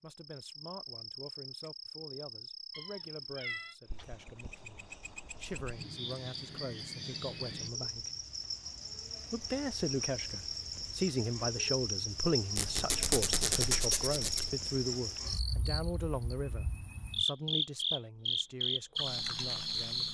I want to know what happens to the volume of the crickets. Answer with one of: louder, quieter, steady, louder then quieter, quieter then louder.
louder.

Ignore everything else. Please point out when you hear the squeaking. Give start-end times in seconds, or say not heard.
12.6-14.5.